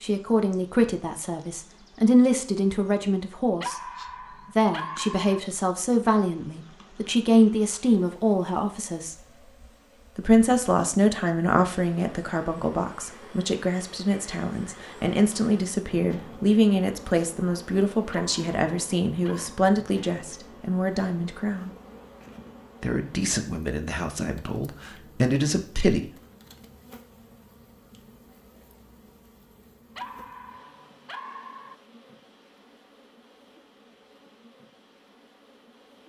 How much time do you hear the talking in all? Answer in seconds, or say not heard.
23 s.